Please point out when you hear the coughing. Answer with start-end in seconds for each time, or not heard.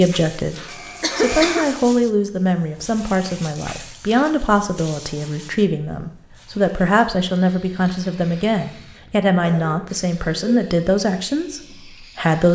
1.0-1.6, 9.0-10.6.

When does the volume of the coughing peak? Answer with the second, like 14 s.
1 s.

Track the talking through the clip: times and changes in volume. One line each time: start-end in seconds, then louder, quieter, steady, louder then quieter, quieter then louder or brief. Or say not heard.
0.0-12.5 steady.